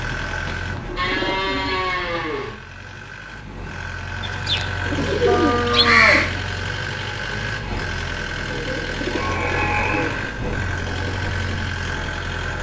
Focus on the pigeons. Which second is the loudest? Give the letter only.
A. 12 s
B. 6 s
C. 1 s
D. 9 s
B.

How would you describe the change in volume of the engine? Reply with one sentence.
The volume of the engine goes up.